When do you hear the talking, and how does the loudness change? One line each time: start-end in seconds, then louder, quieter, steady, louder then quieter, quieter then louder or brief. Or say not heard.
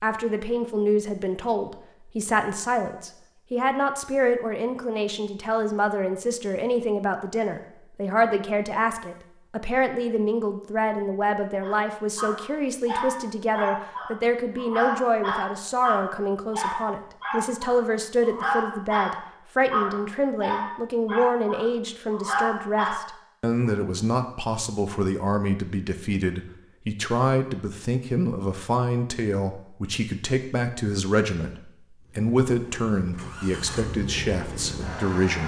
0.0-35.4 steady.